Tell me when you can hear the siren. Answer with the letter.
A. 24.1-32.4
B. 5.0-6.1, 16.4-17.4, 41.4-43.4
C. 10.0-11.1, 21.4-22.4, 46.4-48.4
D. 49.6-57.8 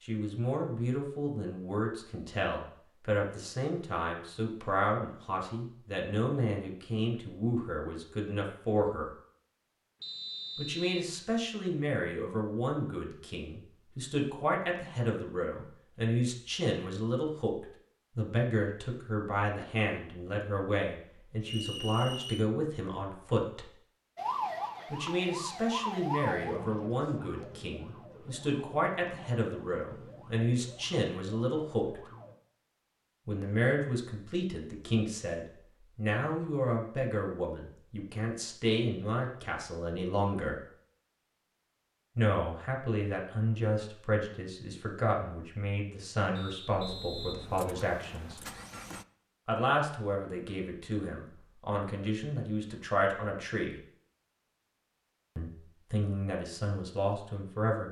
A.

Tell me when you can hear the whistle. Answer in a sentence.
You can hear the whistle from 10.0 to 11.1 s, from 21.4 to 22.4 s and from 46.4 to 48.4 s.